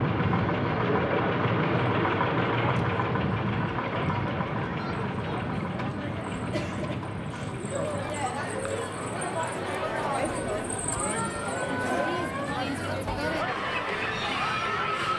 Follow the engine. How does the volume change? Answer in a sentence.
The volume of the engine goes down.